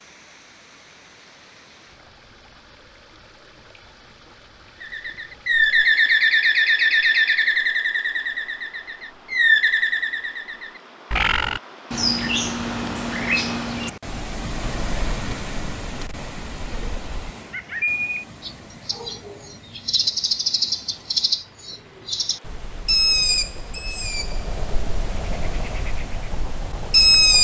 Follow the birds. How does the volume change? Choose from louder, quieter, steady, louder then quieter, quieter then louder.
quieter then louder.